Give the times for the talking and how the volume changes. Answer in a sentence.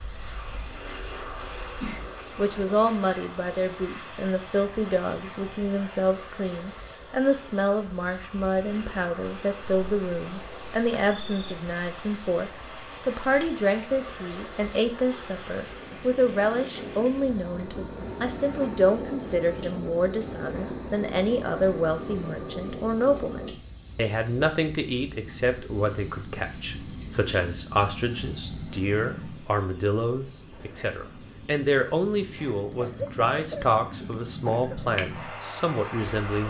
The talking can be heard from 2.4 to 36.4 s, at a steady volume.